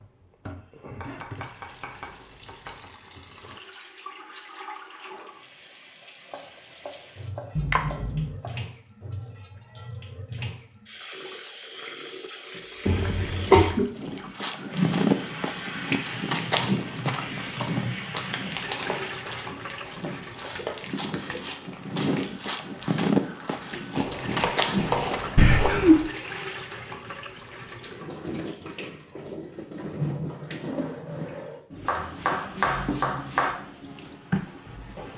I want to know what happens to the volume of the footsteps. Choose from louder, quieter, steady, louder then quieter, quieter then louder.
quieter then louder.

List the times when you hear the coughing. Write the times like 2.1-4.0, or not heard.
7.5-8.3, 12.8-13.8, 25.4-26.1.